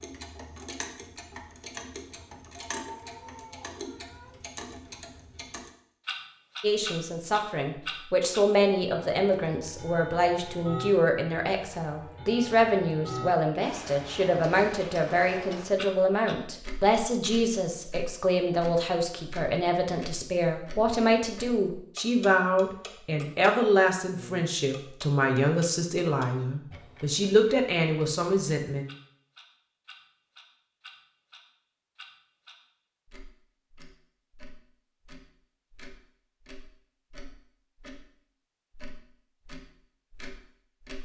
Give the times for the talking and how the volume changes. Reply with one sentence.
You can hear the talking from 6.6 to 28.9 s, at a steady volume.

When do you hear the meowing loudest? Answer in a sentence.
The loudest moment of the meowing is at 3 seconds.